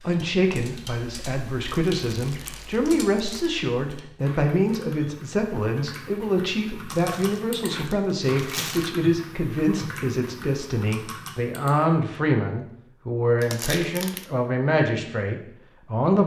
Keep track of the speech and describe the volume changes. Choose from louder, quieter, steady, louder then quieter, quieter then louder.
steady.